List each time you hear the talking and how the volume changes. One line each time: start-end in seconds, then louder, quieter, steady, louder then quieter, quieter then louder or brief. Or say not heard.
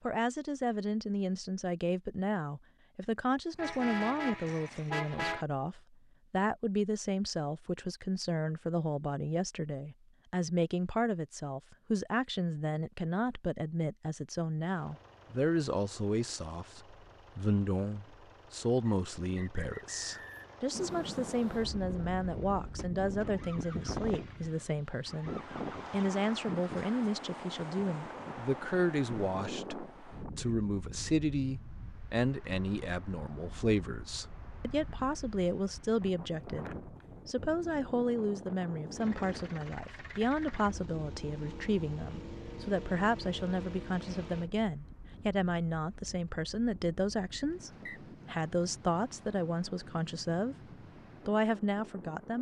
0.0-50.5 steady
51.2-52.3 brief.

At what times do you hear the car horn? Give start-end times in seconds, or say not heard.
3.5-5.5.